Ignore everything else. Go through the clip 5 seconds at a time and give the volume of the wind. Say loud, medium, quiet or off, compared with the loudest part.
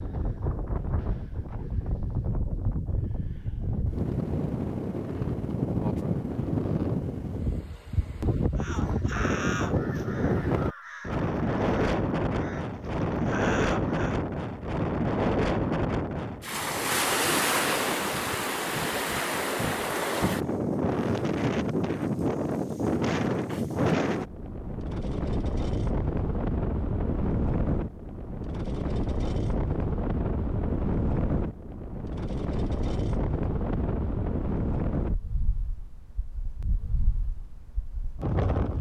medium, loud, loud, loud, loud, loud, loud, medium.